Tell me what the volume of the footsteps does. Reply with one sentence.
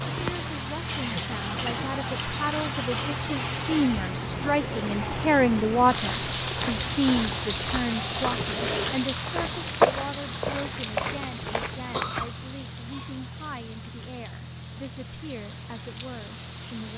The volume of the footsteps goes up, then down.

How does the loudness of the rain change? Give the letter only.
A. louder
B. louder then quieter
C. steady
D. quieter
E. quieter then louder
D.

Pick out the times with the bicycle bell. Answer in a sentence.
The bicycle bell can't be heard in this clip.